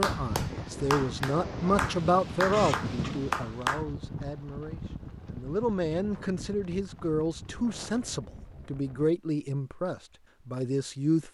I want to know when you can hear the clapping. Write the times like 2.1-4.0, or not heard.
0.0-3.9.